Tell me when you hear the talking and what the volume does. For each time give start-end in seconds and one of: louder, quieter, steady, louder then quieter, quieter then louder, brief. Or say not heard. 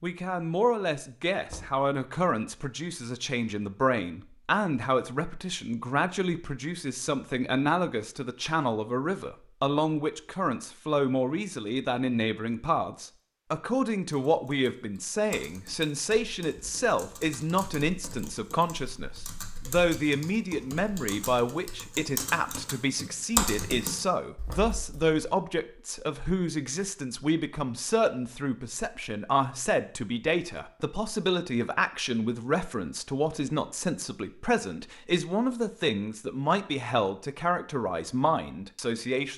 0.0-39.3 steady.